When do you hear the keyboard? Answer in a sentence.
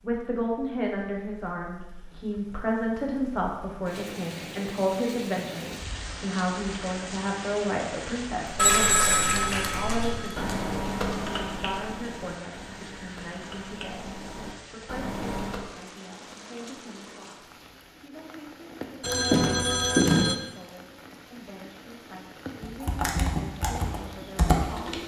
You can hear the keyboard from 8.4 to 15.7 s and from 22.6 to 25.0 s.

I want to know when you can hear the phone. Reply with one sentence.
The phone can be heard from 8.6 to 10.6 s and from 19.0 to 20.4 s.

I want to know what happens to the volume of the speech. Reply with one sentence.
The loudness of the speech goes down.